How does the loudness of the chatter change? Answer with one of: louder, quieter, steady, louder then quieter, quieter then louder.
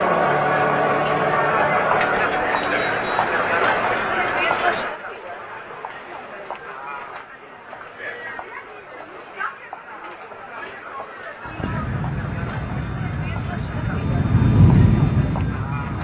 quieter.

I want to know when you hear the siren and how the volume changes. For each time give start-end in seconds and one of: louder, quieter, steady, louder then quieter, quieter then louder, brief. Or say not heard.
not heard.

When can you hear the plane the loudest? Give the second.
15 s.